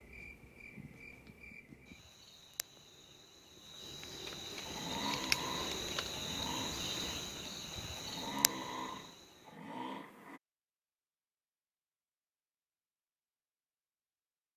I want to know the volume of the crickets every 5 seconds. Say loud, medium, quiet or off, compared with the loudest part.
medium, loud, off.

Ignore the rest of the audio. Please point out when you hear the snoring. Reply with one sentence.
You can hear the snoring from 4.5 to 10.4 s.